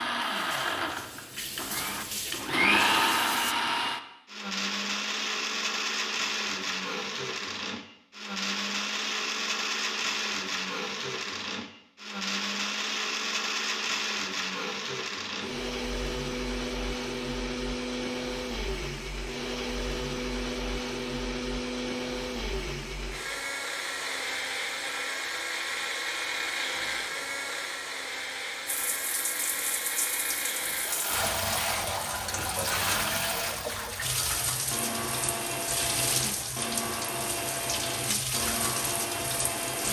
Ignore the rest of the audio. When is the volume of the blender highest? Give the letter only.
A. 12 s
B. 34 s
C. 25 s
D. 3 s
D.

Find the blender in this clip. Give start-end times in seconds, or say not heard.
0.0-39.8.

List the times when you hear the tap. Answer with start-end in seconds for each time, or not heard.
0.1-3.5, 28.6-39.8.